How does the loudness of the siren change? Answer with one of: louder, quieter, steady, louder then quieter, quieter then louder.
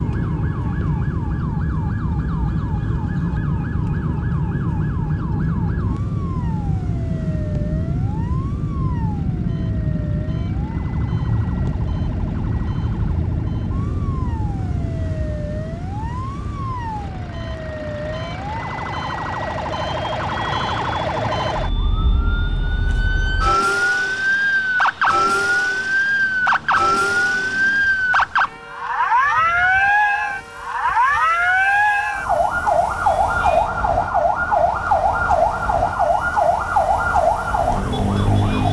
louder.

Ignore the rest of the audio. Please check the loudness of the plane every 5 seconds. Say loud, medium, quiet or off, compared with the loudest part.
loud, loud, loud, medium, quiet, quiet, quiet, quiet.